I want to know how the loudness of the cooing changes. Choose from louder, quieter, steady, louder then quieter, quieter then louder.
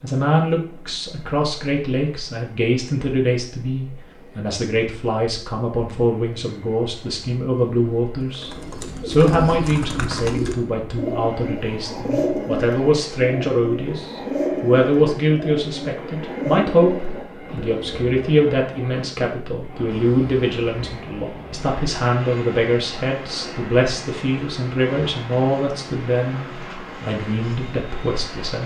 steady.